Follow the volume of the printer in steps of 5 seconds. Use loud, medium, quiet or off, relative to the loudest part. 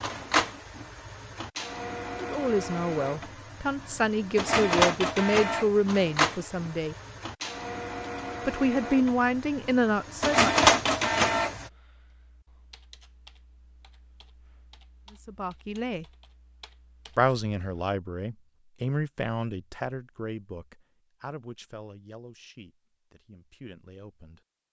medium, medium, loud, off, off.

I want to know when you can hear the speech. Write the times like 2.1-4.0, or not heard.
2.1-7.0, 8.4-10.6, 15.1-16.1, 17.1-24.4.